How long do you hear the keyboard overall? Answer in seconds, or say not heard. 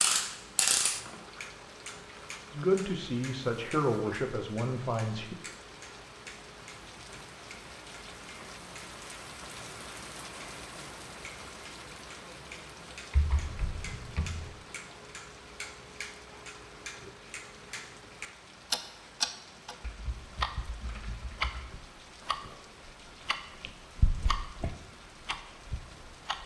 5 s.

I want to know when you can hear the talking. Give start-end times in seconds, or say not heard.
2.5-5.3.